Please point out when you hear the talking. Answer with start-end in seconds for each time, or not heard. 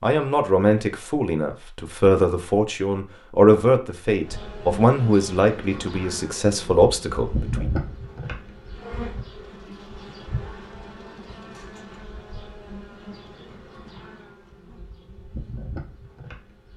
0.0-7.7.